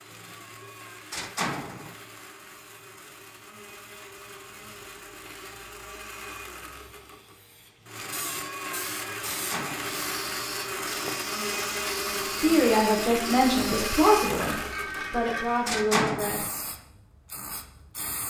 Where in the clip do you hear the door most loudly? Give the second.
16 s.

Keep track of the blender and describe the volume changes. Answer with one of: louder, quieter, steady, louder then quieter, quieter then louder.
louder.